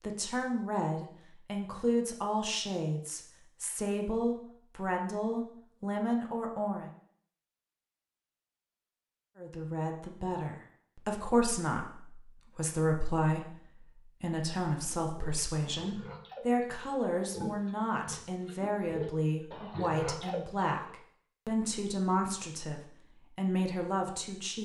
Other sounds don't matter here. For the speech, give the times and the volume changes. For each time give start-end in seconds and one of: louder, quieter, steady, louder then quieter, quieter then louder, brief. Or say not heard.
0.0-6.9 steady
9.3-24.6 steady.